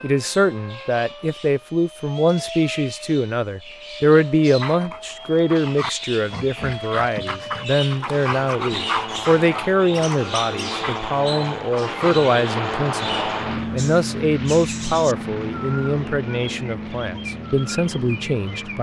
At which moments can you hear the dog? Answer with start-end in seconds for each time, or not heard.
4.5-12.2.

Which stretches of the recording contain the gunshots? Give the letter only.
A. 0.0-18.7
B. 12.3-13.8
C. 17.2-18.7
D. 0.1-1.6
B.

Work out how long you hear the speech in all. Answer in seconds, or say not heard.
19 s.